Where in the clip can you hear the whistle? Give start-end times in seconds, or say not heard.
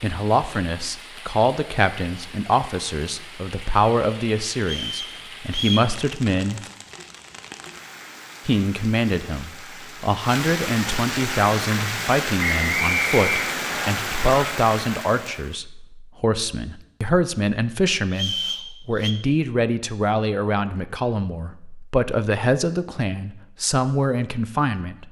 4.6-5.9, 12.4-13.9, 18.1-19.1.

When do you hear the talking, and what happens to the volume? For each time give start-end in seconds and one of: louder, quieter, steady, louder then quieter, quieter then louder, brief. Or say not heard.
0.0-6.7 steady
8.4-25.0 steady.